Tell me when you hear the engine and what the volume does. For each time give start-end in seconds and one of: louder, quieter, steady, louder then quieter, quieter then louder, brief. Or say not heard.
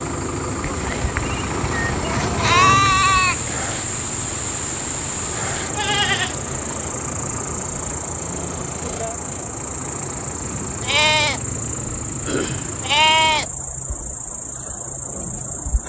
0.0-13.5 quieter.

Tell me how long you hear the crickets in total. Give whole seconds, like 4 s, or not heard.
16 s.